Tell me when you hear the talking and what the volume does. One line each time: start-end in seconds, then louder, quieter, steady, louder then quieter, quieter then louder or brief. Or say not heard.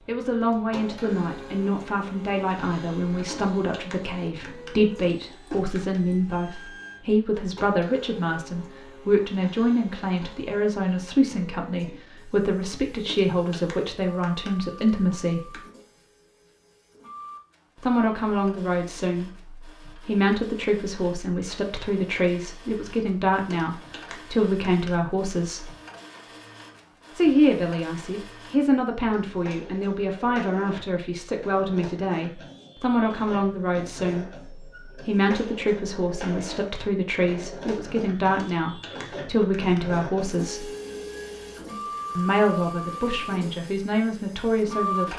0.1-15.6 steady
17.8-25.7 steady
27.1-40.6 steady
42.1-45.1 brief.